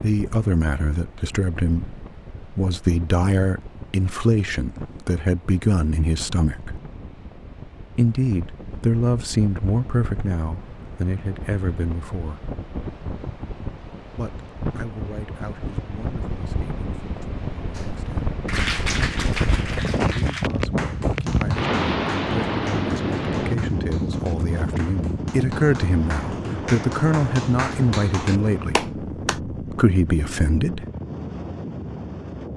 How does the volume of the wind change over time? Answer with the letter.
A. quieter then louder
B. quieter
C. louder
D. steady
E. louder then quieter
E.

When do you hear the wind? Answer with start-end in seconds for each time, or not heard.
0.0-32.5.